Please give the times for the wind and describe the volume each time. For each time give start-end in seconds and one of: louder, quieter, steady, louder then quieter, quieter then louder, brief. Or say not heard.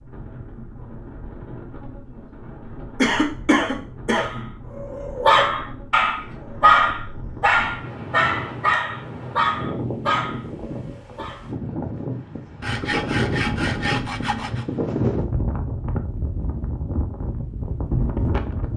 0.0-18.7 louder.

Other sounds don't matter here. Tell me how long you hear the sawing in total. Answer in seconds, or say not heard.
2 s.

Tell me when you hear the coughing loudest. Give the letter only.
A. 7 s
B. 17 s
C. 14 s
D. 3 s
D.